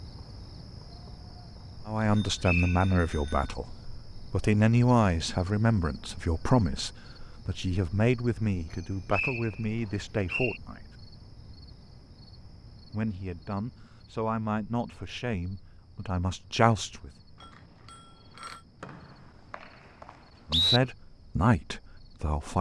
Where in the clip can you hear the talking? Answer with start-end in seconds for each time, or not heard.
1.9-3.7, 4.3-10.9, 12.9-17.1, 20.5-22.5.